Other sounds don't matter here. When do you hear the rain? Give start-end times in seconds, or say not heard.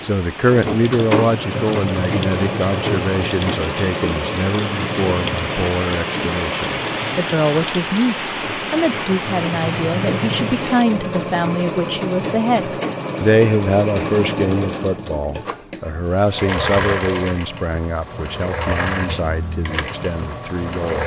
0.0-10.8.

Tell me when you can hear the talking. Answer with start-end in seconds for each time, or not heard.
0.0-21.0.